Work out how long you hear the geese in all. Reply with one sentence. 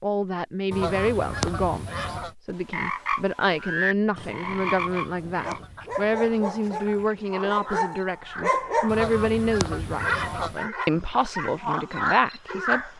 You can hear the geese for 6 seconds altogether.